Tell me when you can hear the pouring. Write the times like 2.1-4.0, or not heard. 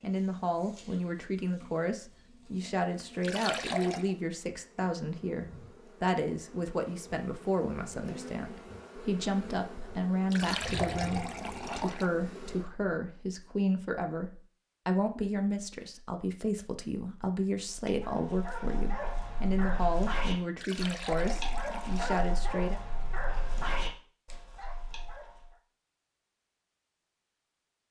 3.2-4.2, 10.3-12.1, 20.6-22.3.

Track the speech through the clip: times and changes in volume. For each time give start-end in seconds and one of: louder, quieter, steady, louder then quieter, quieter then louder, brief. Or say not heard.
0.0-22.8 steady.